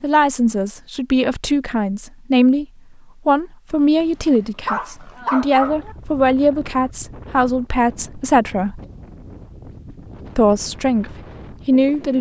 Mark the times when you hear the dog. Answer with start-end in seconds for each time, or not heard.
4.0-6.0.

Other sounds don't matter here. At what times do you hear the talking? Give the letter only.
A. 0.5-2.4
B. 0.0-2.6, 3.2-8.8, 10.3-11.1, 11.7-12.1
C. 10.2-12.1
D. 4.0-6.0
B.